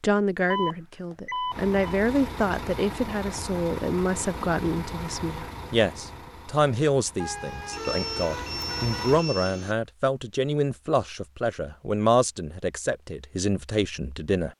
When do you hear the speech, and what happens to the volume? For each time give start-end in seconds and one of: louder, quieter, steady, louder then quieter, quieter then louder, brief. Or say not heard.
0.0-14.5 steady.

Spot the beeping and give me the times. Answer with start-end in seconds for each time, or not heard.
0.5-1.9, 7.7-9.8.